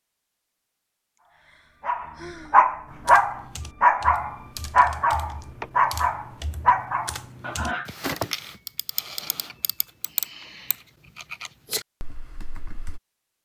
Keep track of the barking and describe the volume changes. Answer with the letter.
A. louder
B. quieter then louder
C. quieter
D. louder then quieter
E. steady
C.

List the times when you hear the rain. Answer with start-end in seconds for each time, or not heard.
not heard.